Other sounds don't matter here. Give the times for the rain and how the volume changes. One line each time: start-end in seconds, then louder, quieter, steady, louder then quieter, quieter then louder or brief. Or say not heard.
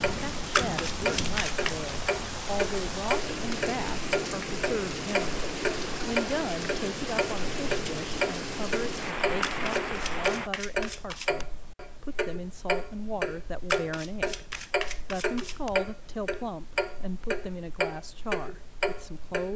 0.0-10.5 steady.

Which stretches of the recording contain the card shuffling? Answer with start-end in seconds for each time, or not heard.
0.6-1.8, 9.4-11.4, 13.7-15.7.